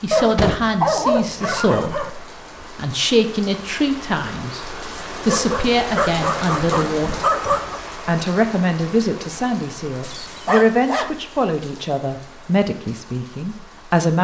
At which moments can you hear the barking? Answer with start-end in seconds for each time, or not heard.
0.1-2.1, 5.2-7.8, 10.0-11.2.